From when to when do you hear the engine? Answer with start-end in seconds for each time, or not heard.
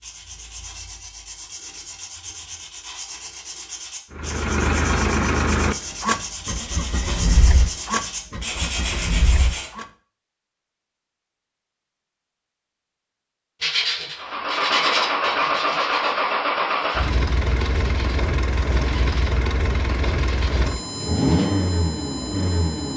4.1-9.8, 14.2-22.9.